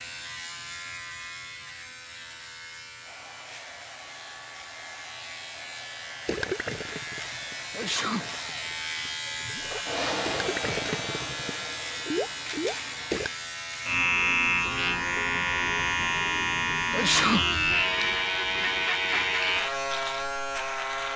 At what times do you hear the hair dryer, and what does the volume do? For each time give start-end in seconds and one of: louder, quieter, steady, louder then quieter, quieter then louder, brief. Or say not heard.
3.0-13.3 louder then quieter.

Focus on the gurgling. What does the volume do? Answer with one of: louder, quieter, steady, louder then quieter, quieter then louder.
quieter then louder.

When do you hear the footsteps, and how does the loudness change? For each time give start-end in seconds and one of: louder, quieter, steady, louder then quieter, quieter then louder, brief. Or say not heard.
not heard.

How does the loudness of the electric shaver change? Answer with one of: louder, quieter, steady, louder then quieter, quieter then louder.
louder.